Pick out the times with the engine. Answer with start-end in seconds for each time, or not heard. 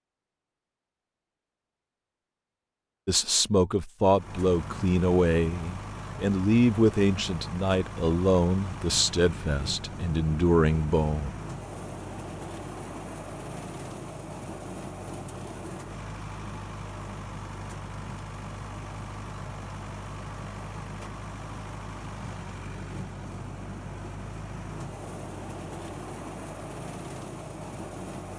4.1-28.3.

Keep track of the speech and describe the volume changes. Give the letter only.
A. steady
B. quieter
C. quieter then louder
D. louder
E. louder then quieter
A.